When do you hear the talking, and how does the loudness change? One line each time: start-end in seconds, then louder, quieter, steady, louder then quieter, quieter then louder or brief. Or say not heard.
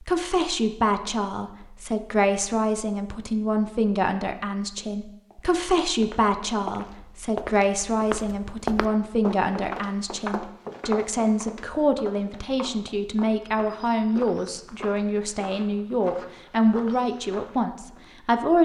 0.0-18.5 steady.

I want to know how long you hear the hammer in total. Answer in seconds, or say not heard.
not heard.